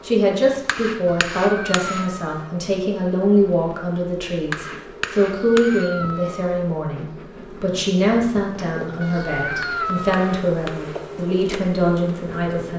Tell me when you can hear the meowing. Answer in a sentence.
You can hear the meowing from 1.1 to 2.5 s, from 5.2 to 6.6 s and from 9.0 to 10.2 s.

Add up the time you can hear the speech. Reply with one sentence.
The speech can be heard for 13 seconds in total.